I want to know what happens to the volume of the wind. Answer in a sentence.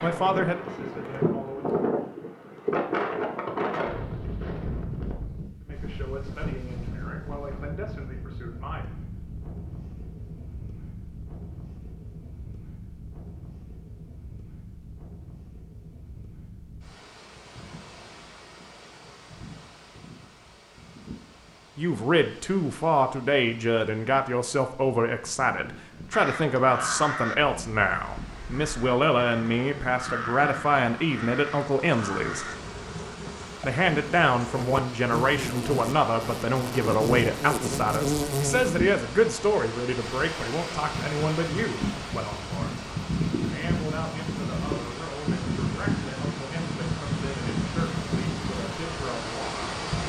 The loudness of the wind goes down, then up.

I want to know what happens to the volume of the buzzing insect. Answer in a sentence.
The loudness of the buzzing insect goes up.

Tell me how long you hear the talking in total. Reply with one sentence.
The talking can be heard for 31 seconds in total.